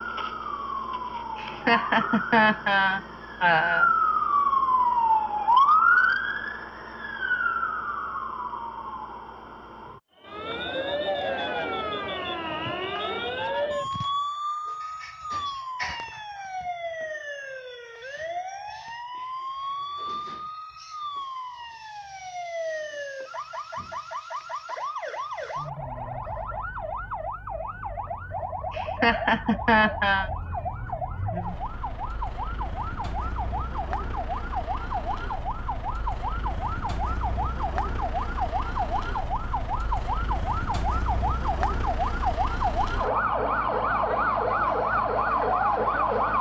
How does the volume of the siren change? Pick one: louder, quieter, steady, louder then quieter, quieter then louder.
quieter then louder.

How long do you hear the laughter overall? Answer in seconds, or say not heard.
4 s.